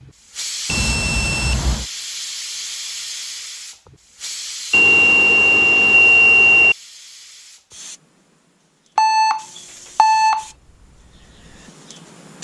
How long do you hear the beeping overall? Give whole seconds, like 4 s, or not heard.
5 s.